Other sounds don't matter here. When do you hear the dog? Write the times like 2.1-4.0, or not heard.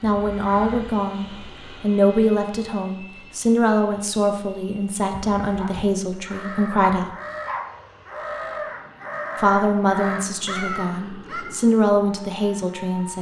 5.5-6.2, 6.8-7.8.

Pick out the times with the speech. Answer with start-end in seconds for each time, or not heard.
0.0-7.2, 9.4-13.1.